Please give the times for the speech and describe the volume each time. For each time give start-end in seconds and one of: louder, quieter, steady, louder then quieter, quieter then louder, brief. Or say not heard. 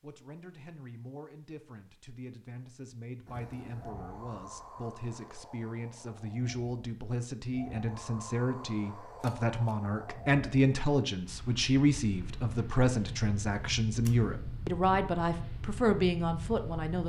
0.0-17.0 louder.